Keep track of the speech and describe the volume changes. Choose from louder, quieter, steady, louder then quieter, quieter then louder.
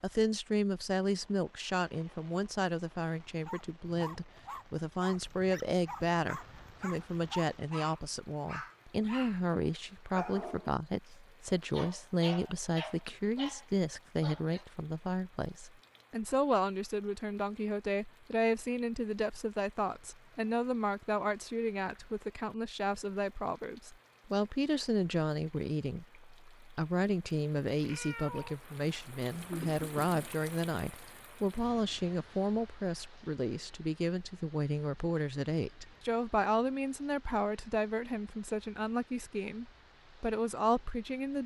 steady.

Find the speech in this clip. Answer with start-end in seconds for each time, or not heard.
0.0-41.4.